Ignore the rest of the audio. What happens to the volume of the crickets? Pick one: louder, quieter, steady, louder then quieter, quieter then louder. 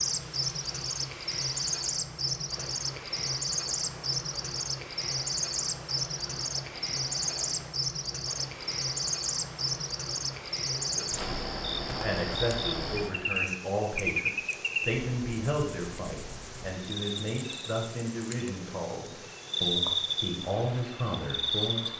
steady.